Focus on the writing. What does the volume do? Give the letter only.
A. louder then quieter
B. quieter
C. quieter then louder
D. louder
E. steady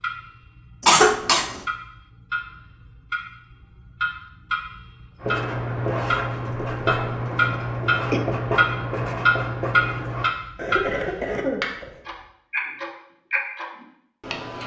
E.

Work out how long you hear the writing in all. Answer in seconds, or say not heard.
5 s.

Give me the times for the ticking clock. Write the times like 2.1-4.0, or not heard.
0.0-14.6.